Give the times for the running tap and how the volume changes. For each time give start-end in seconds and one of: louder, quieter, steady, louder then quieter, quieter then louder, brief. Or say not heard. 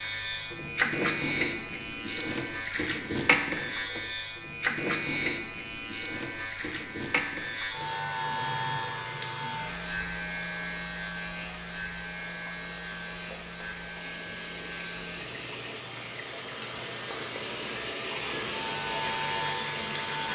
0.0-20.3 quieter then louder.